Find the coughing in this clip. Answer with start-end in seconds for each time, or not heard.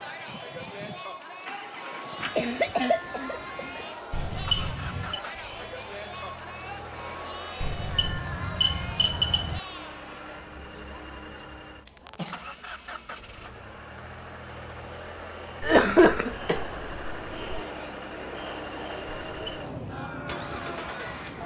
2.4-3.8, 11.8-12.4, 15.6-17.6.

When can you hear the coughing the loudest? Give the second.
16 s.